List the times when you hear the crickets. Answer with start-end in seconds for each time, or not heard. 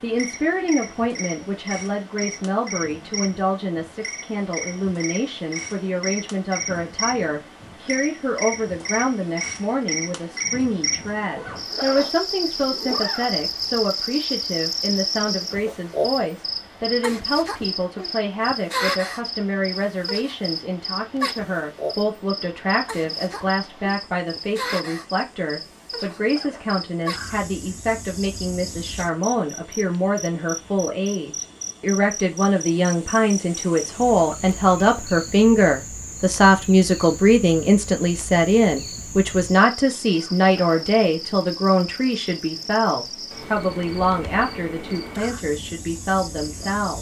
0.0-46.9.